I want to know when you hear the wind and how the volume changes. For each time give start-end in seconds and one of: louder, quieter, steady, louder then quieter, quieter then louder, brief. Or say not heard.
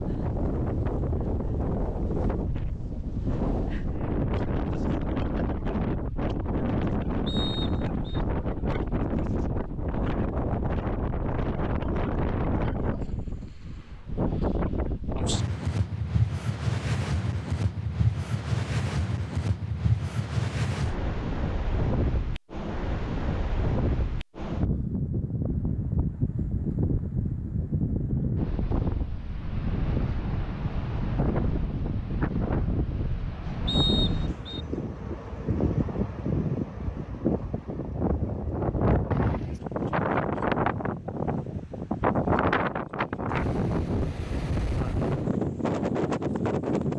0.0-46.9 steady.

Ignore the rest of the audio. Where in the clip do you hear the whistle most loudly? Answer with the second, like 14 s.
34 s.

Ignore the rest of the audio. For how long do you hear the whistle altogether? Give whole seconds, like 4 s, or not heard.
2 s.